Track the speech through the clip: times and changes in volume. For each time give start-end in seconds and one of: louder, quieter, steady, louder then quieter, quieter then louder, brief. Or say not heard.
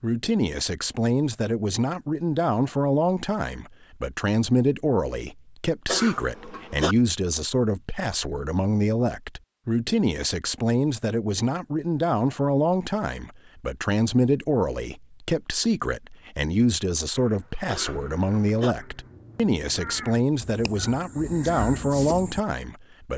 0.0-23.1 steady.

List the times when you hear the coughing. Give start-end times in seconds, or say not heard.
5.8-7.0, 17.6-18.8.